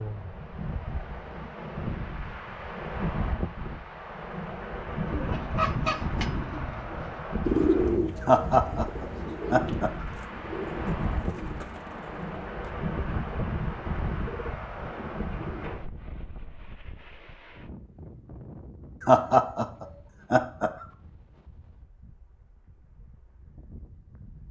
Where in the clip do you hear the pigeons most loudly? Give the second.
8 s.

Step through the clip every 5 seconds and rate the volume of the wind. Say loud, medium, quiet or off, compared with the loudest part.
loud, loud, loud, medium, quiet.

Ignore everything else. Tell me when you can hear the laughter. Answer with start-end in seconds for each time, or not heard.
8.2-10.1, 19.0-20.9.